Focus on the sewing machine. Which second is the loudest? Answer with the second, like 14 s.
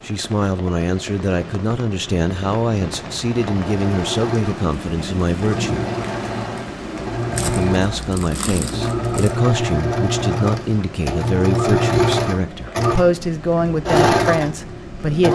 12 s.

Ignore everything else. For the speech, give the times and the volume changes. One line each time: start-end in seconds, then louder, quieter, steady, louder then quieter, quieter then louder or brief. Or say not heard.
0.0-5.8 steady
7.2-15.3 steady.